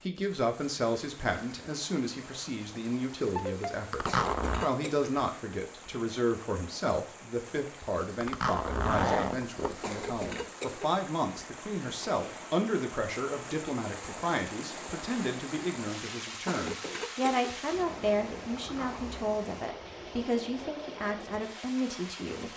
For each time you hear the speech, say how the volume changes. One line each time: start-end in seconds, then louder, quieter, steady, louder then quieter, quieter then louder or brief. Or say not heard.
0.0-22.5 steady.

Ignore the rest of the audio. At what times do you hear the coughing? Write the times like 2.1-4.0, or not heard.
4.0-5.1, 9.8-10.9, 16.4-17.6.